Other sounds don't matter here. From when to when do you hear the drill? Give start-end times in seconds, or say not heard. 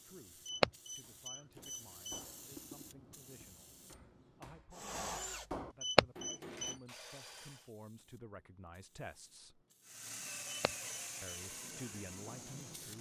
4.7-7.7, 9.8-12.9.